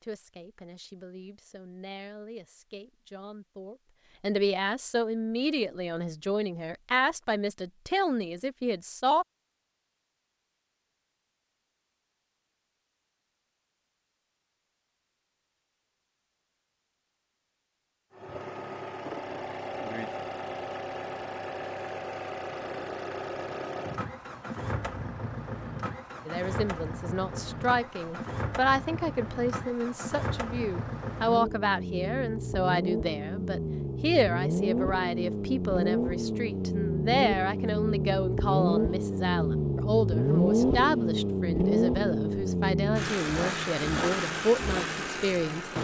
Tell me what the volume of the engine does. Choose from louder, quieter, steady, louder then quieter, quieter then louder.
louder.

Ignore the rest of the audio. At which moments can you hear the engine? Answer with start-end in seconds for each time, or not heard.
18.1-45.7.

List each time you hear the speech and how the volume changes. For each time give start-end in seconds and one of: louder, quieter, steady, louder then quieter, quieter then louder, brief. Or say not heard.
0.0-9.2 louder
26.2-45.7 steady.